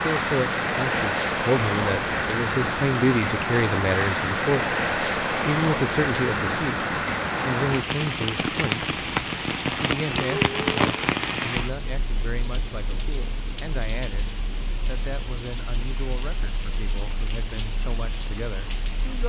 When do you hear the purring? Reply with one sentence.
The purring can't be heard in this clip.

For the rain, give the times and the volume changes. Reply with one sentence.
The rain can be heard from 0.0 to 19.2 s, getting quieter.